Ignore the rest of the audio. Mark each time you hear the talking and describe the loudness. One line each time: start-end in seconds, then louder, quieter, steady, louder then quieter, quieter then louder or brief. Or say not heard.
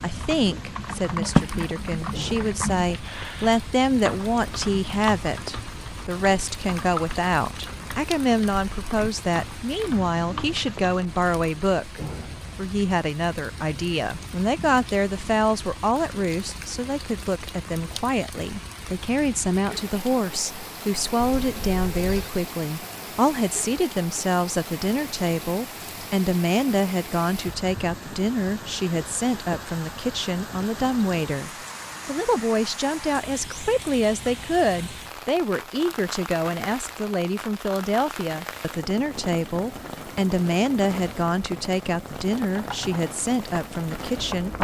0.0-44.5 steady.